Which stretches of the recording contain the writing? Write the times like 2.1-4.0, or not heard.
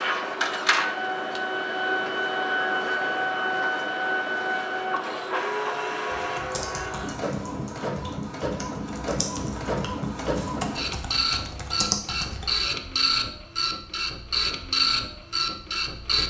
not heard.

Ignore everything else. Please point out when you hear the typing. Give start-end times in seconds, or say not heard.
6.1-12.4.